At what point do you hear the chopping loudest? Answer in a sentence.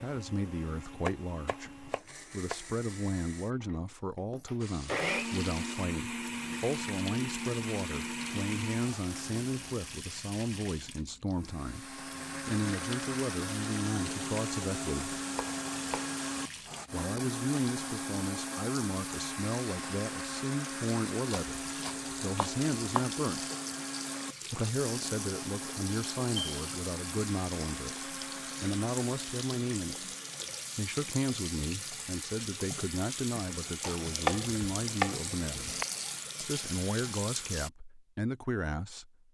The volume of the chopping peaks at 34 seconds.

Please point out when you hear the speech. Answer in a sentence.
You can hear the speech from 0.0 to 15.2 s, from 16.9 to 23.4 s, from 24.5 to 30.1 s, from 30.8 to 35.7 s and from 36.4 to 39.1 s.